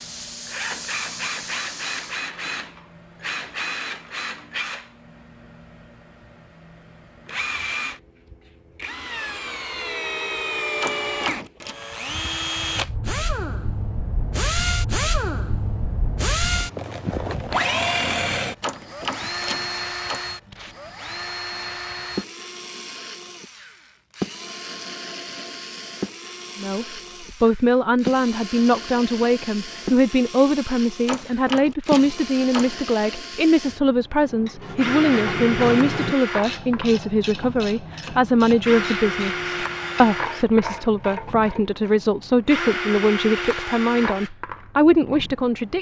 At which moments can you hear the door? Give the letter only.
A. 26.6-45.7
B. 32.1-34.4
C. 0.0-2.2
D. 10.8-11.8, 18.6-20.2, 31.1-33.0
D.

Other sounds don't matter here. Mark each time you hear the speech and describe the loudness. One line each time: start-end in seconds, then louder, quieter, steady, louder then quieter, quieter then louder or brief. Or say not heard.
26.6-45.7 steady.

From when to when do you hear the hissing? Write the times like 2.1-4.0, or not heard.
0.0-2.2.